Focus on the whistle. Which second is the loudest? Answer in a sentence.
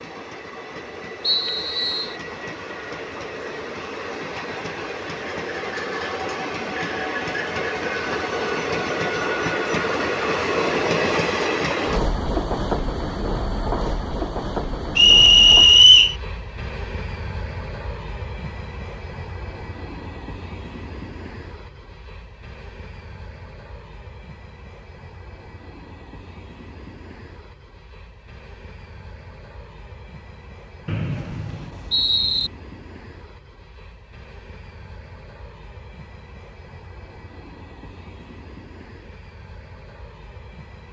The loudest moment of the whistle is at 16 seconds.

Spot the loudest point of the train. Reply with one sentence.
The volume of the train peaks at 11 seconds.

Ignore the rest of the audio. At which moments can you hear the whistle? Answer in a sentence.
You can hear the whistle from 1.2 to 2.1 s, from 14.9 to 16.1 s and from 30.9 to 32.5 s.